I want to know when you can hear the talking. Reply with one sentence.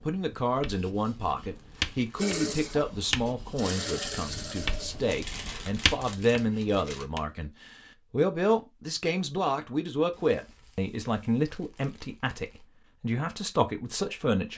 The talking can be heard from 0.0 to 14.5 s.